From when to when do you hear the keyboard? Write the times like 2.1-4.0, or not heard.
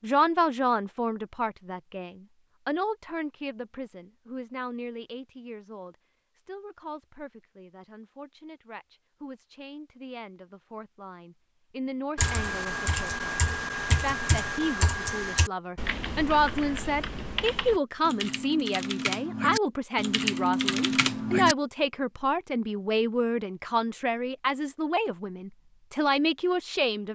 12.2-21.6.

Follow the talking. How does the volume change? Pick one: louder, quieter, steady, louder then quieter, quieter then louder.
quieter then louder.